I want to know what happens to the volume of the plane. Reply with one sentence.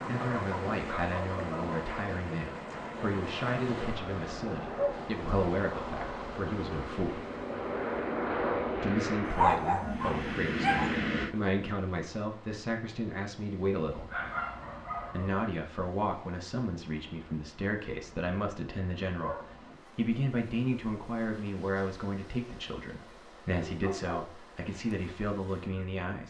The volume of the plane goes up.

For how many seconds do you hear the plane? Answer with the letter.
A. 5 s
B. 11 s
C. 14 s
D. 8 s
B.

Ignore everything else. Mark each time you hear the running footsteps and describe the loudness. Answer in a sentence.
You can't hear the running footsteps here.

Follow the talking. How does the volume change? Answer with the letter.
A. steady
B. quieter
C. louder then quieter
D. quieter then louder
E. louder
A.